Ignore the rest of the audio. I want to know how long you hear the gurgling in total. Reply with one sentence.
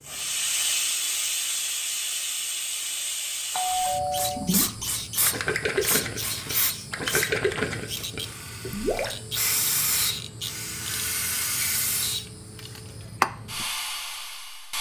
The gurgling can be heard for 6 seconds in total.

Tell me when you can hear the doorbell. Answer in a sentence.
You can hear the doorbell from 3.5 to 4.5 s.